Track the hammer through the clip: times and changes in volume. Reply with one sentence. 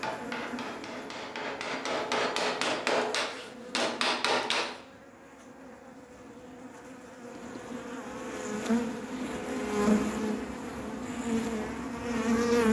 The hammer can be heard from 0.0 to 4.8 s, getting louder.